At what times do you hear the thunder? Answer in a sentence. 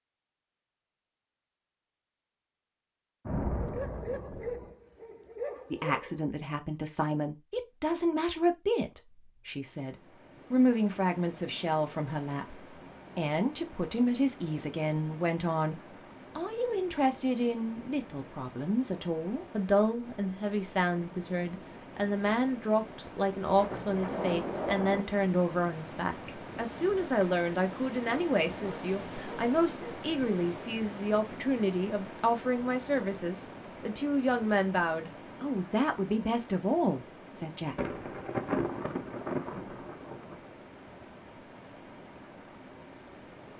The thunder can be heard from 3.2 to 4.8 s, from 23.5 to 25.1 s and from 37.8 to 40.4 s.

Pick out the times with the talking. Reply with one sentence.
The talking can be heard from 5.7 to 38.0 s.